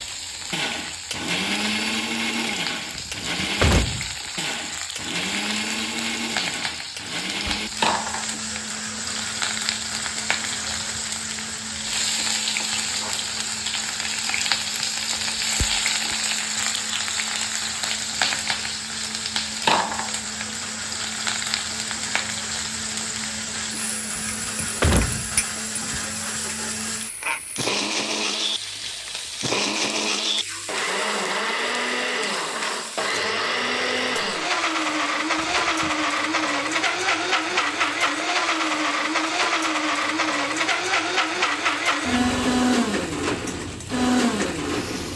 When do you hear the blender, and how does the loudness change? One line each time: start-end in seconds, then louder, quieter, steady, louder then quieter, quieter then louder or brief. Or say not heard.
0.0-45.1 quieter then louder.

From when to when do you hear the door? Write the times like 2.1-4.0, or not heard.
3.0-4.2, 24.1-26.0, 35.4-36.0.